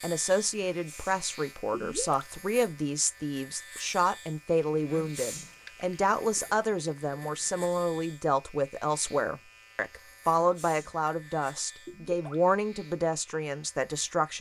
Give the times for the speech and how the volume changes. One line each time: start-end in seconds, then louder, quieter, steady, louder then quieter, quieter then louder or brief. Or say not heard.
0.0-14.3 steady.